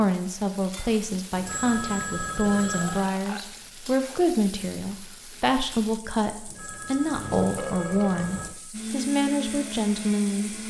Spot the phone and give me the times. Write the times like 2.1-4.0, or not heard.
1.4-3.1, 6.5-8.5.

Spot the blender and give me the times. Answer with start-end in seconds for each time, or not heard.
8.7-10.6.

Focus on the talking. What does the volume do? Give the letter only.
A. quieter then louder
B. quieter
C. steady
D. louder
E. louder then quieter
C.